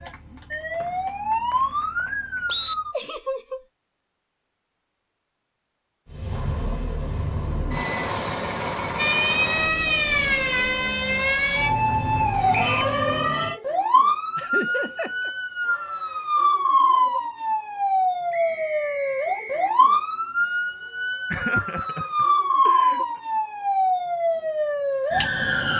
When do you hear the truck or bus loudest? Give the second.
8 s.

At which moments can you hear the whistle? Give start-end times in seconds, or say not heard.
0.8-2.8, 12.5-12.9, 18.3-19.7.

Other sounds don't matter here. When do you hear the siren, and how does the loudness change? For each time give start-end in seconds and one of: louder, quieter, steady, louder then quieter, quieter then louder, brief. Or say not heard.
0.0-3.0 brief
8.9-25.7 steady.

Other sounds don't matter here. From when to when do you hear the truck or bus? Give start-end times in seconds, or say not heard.
6.0-12.5.